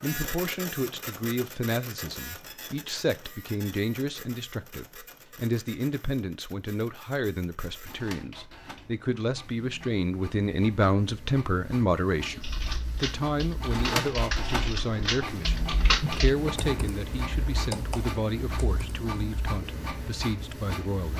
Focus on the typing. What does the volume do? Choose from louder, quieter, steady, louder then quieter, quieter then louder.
louder then quieter.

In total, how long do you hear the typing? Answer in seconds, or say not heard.
7 s.